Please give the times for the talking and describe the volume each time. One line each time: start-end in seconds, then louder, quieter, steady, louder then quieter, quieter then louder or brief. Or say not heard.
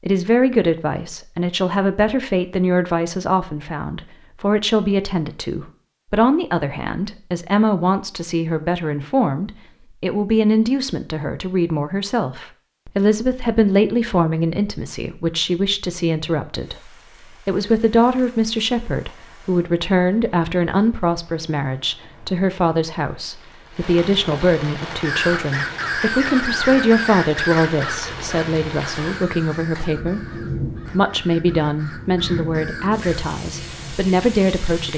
0.0-34.9 steady.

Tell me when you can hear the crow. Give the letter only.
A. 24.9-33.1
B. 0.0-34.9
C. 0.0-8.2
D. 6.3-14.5
A.